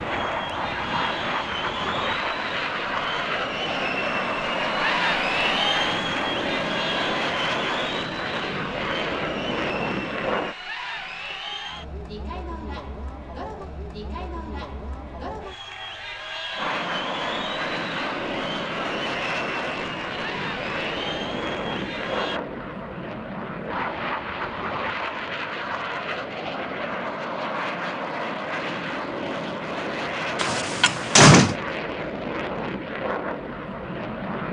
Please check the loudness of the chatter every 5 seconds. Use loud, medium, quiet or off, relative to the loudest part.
loud, loud, medium, medium, medium, off, off.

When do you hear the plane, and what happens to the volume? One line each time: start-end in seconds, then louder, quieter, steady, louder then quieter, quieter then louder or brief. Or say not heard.
0.0-10.6 steady
16.6-34.4 steady.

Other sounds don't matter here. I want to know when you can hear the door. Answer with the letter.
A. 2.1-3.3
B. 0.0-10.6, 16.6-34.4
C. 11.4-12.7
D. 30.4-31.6
D.